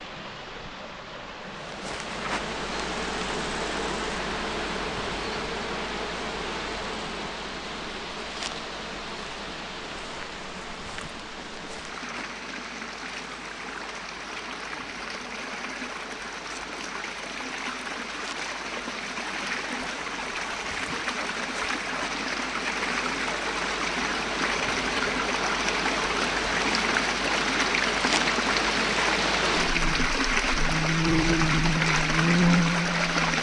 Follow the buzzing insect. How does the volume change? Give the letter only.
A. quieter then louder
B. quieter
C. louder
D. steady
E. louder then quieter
A.